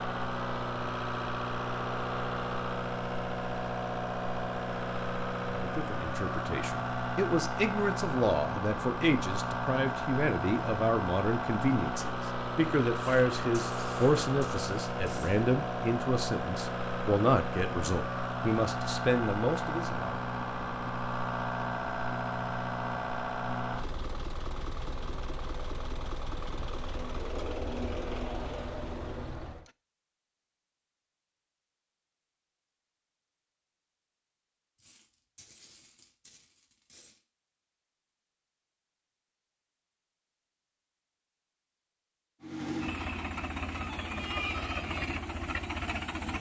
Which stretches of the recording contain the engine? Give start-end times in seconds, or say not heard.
0.0-29.7, 42.4-46.3.